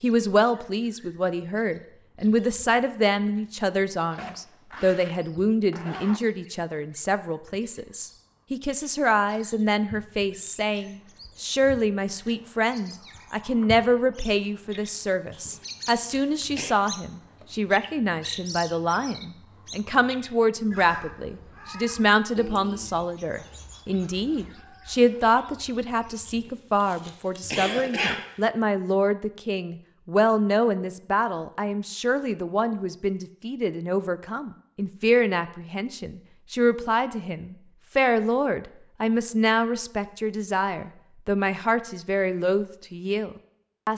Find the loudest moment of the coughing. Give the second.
28 s.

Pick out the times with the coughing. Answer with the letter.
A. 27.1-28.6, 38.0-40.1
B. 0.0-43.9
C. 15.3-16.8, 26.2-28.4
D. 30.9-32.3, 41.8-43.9
C.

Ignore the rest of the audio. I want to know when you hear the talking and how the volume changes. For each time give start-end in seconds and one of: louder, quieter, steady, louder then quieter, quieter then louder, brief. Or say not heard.
0.0-43.9 steady.